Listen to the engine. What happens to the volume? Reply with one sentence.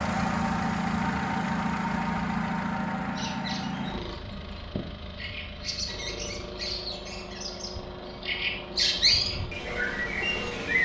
The loudness of the engine goes down.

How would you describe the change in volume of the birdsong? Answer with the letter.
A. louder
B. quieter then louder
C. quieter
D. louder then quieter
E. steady
A.